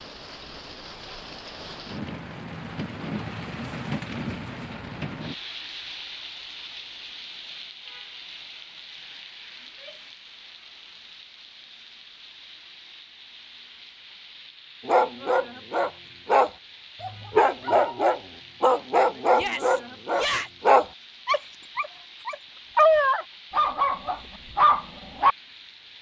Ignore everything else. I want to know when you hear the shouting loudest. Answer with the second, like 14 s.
20 s.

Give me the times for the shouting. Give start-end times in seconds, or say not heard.
9.6-10.1, 19.3-20.5.